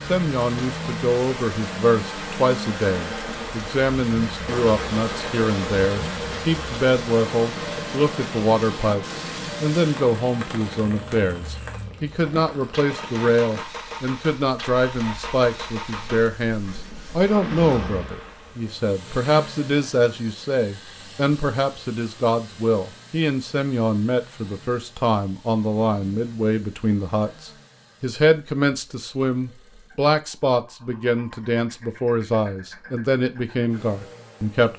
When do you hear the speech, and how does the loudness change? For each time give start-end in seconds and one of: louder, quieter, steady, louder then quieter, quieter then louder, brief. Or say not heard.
0.1-34.7 steady.